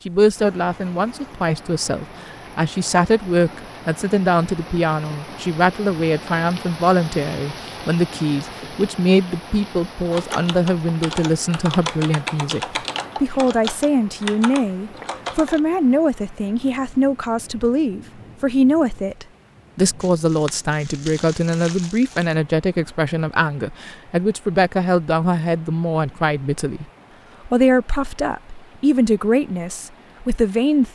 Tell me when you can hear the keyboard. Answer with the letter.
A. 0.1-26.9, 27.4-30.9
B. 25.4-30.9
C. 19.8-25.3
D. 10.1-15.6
D.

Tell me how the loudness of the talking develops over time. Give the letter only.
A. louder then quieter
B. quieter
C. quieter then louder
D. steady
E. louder
D.